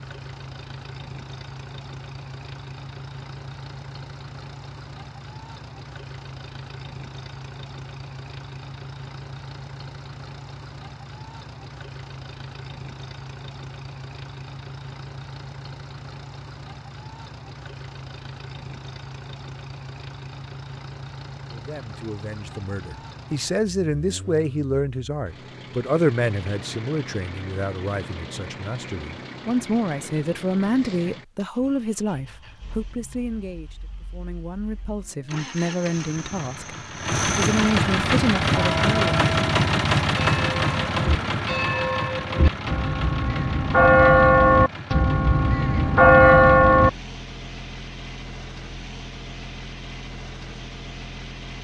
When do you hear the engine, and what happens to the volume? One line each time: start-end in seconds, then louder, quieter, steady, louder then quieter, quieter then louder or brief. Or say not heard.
0.0-51.5 louder then quieter.